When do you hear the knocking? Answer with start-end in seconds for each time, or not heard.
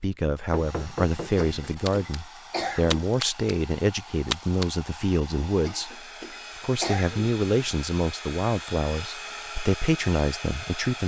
0.5-1.5.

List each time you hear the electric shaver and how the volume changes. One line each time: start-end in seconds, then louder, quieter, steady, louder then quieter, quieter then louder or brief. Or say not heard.
not heard.